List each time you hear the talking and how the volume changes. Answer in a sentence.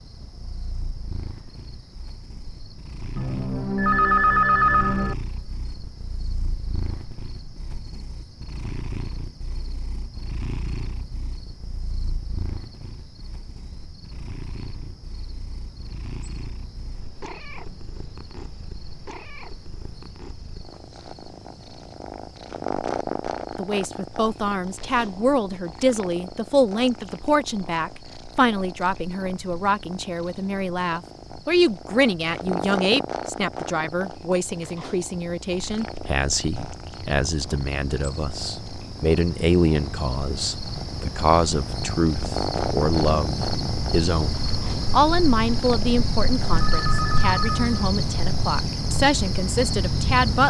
You can hear the talking from 23.6 to 50.4 s, at a steady volume.